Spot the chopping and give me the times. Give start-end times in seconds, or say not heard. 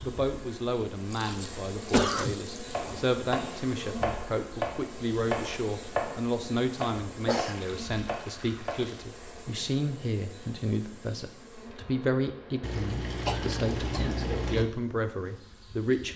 2.7-8.8.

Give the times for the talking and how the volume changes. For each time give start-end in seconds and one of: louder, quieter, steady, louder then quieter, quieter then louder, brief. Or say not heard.
0.0-16.1 steady.